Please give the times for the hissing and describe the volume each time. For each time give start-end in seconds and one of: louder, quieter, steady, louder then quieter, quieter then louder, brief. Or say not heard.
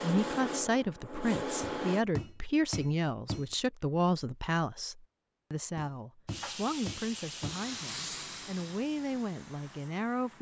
0.0-2.0 brief
6.2-10.3 quieter.